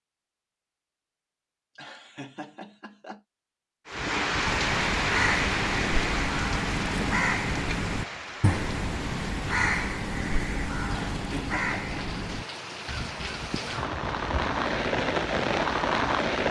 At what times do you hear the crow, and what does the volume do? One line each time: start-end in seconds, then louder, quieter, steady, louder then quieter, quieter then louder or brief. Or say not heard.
4.5-14.9 quieter.